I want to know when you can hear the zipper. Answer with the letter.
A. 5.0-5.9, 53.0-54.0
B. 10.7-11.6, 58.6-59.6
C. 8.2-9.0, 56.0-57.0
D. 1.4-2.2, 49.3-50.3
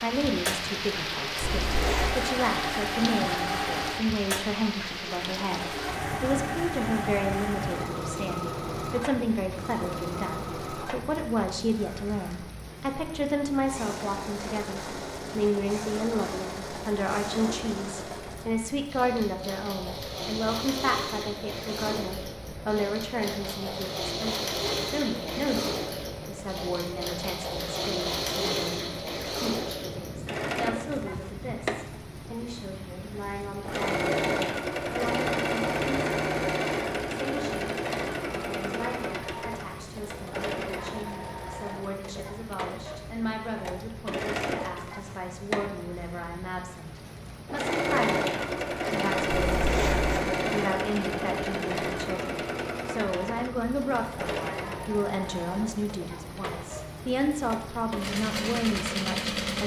D.